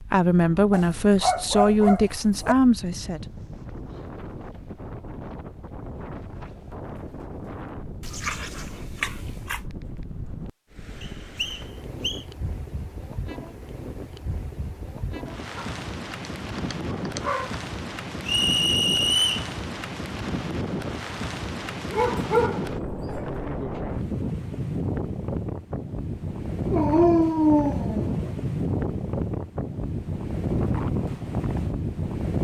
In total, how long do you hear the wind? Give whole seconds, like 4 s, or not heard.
32 s.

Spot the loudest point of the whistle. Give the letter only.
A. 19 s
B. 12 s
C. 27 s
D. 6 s
A.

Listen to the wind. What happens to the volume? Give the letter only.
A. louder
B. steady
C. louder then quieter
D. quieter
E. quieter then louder
A.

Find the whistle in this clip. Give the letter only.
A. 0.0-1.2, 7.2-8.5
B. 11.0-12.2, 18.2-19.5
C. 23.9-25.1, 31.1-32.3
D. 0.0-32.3
B.